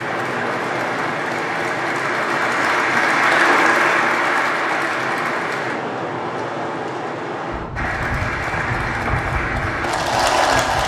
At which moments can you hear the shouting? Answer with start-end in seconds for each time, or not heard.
not heard.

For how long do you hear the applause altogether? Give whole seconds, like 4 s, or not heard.
9 s.